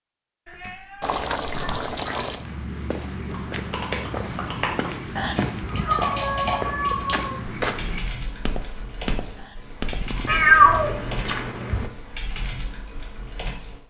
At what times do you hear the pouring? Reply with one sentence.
The pouring can be heard from 1.0 to 2.5 s, from 5.2 to 5.9 s and from 9.3 to 10.3 s.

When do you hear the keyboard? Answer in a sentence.
The keyboard can be heard from 3.2 to 13.8 s.